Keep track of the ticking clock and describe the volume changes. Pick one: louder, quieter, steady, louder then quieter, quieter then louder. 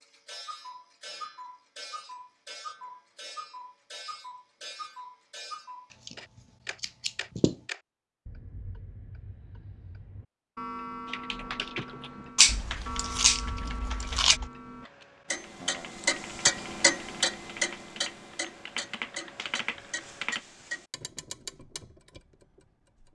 louder then quieter.